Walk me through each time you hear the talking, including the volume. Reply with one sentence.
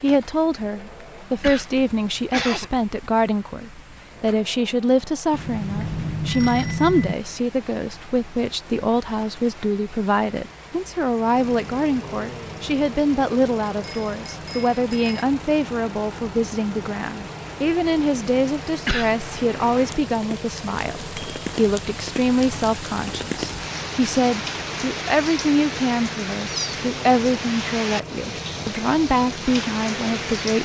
The talking can be heard from 0.0 to 30.5 s, at a steady volume.